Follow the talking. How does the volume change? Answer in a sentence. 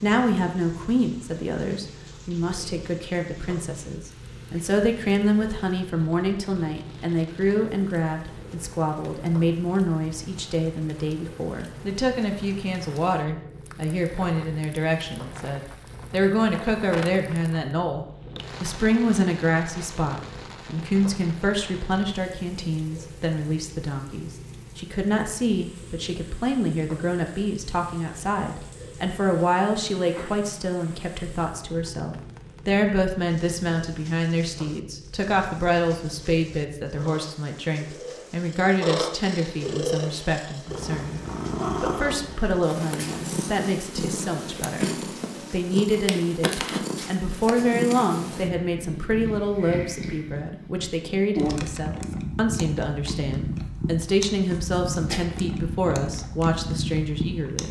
The loudness of the talking stays about the same.